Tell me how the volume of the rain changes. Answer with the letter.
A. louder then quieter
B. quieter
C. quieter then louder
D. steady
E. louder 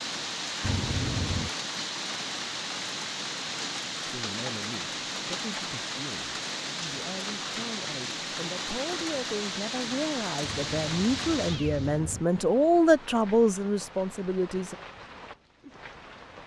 B.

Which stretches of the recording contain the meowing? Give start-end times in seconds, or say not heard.
0.6-1.5, 10.7-12.2.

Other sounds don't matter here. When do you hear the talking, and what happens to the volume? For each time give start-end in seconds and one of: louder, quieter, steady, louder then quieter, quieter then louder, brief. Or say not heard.
4.0-14.8 louder.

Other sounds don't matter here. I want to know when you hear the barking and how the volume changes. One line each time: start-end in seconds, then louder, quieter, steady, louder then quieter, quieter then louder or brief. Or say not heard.
not heard.